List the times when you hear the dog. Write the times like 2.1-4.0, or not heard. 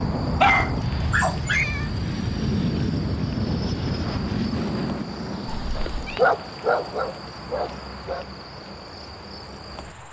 0.4-1.6, 5.8-8.2.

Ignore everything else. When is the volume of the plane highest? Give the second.
3 s.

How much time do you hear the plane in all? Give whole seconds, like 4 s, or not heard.
10 s.